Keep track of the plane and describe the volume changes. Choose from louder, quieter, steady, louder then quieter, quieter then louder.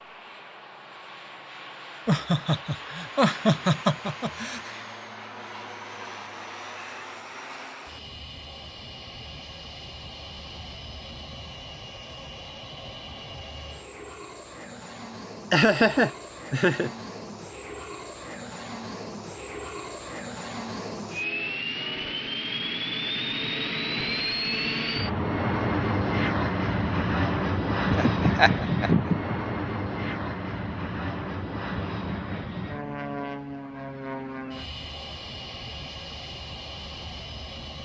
louder then quieter.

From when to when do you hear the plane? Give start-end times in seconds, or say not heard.
0.0-37.8.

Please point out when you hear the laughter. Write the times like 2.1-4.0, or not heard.
2.0-4.7, 15.5-16.9, 27.9-29.4.